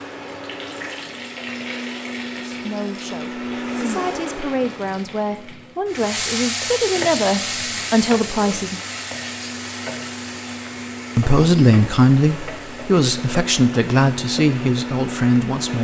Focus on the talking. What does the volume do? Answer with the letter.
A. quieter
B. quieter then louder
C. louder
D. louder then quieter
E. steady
C.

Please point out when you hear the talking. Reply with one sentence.
The talking can be heard from 2.5 to 8.8 s and from 11.2 to 15.7 s.